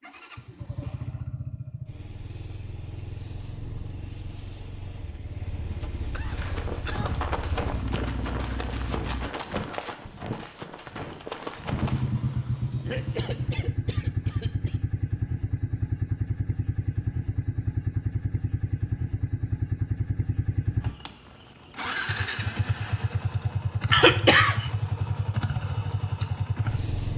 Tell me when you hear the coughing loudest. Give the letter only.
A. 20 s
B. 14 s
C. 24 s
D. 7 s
C.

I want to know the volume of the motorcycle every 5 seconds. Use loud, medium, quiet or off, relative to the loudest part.
medium, medium, loud, loud, loud, loud.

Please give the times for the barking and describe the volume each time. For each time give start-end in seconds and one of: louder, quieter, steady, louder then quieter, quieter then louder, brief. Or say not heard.
not heard.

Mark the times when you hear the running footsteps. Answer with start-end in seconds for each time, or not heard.
6.3-12.1.